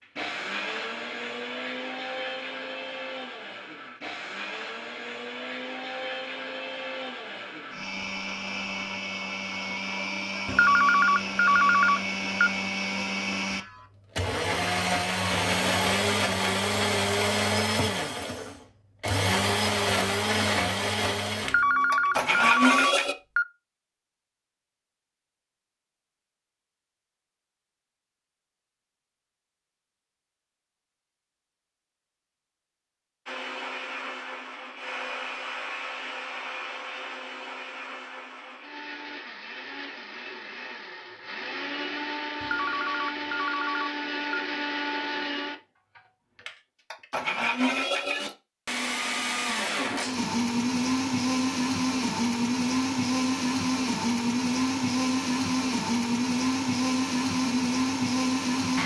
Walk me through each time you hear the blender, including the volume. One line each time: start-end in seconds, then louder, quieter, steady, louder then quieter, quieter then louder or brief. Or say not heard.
0.0-23.1 louder
33.2-58.8 louder.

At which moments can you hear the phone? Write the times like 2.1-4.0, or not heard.
10.4-12.5, 21.4-23.4, 42.4-44.4.